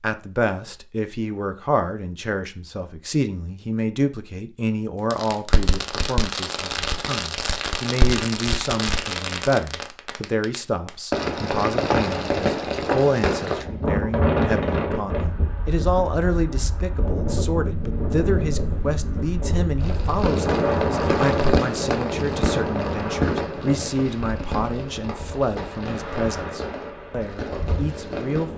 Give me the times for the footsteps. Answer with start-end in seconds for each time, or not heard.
not heard.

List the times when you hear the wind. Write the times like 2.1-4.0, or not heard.
13.6-28.5.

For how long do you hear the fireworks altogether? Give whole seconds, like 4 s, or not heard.
17 s.